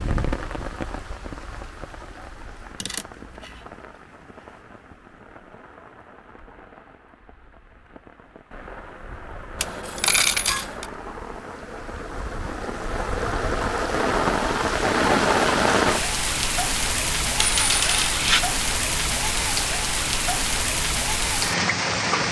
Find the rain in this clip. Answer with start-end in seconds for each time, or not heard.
0.0-22.2.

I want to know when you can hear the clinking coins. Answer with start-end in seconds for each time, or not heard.
2.8-3.6, 9.6-10.8, 17.4-18.4.